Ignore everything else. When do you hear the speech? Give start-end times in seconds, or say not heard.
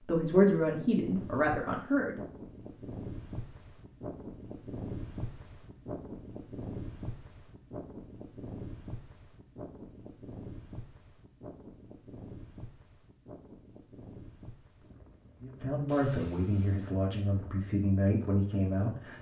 0.1-2.2, 15.4-19.1.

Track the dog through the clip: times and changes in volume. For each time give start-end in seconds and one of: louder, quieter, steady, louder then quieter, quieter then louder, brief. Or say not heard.
not heard.